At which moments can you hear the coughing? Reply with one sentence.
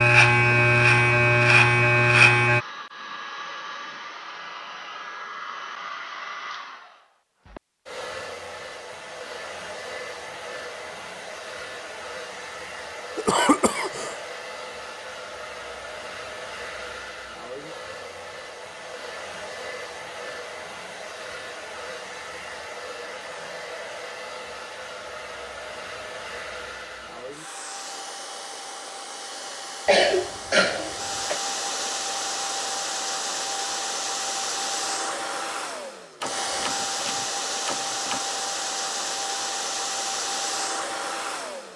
The coughing can be heard from 13.2 to 14.2 s and from 29.9 to 31.4 s.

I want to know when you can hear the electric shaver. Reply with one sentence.
You can hear the electric shaver from 0.0 to 2.6 s.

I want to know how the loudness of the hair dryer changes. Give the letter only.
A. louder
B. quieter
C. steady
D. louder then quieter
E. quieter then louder
A.